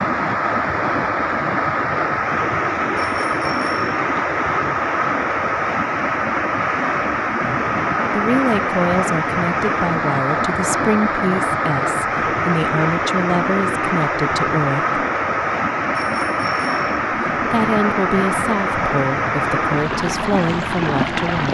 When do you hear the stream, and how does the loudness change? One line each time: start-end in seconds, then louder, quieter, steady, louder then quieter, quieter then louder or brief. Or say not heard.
0.0-21.5 steady.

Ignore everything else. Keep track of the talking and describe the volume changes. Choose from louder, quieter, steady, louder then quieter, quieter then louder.
steady.